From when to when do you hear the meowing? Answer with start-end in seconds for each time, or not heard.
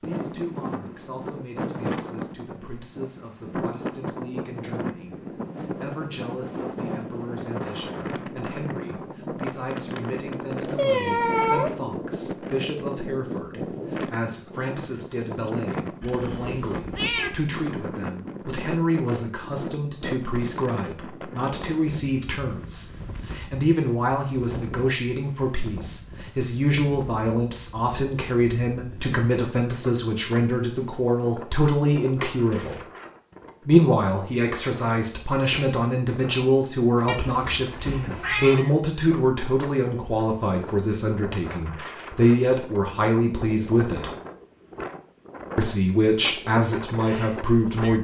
10.8-11.7, 16.0-17.3, 37.0-38.6.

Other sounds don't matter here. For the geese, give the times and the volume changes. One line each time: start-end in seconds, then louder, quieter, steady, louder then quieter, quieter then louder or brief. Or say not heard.
not heard.